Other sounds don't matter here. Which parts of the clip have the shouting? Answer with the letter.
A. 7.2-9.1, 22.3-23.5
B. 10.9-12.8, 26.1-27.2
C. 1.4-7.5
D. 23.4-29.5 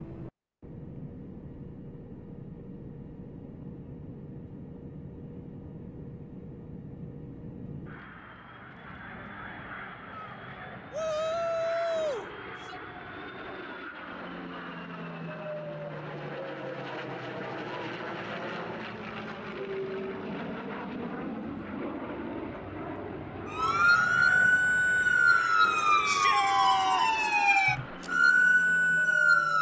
B.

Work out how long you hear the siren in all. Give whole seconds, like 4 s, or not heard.
6 s.